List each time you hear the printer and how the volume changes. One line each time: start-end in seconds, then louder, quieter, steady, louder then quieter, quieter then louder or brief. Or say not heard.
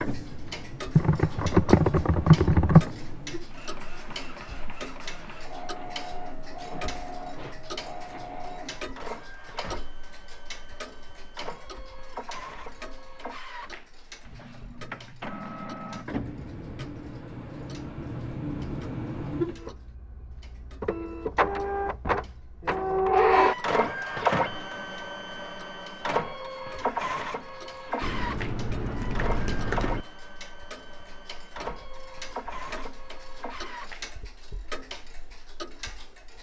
0.0-34.1 louder then quieter.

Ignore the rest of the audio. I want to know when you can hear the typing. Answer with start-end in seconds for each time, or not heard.
0.9-2.9, 28.0-30.1.